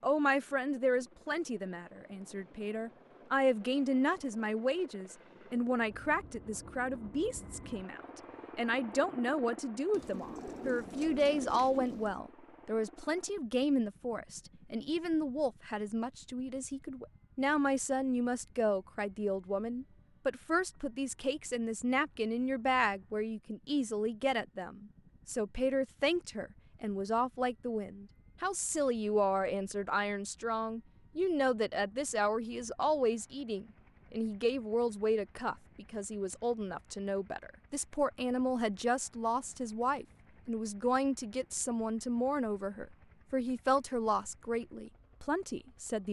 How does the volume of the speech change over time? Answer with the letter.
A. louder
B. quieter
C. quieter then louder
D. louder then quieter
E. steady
E.